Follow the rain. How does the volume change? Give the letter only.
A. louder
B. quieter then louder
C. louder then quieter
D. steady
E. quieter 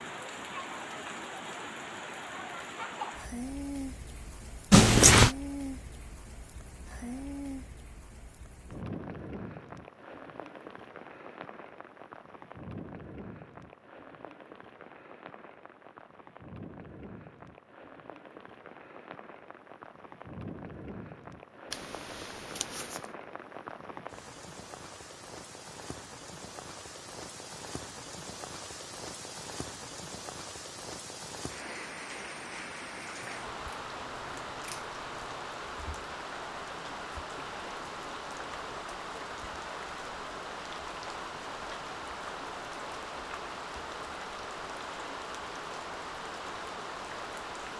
B.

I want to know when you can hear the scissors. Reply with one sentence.
The scissors can be heard from 4.7 to 5.3 s, from 21.7 to 23.1 s and from 33.2 to 35.5 s.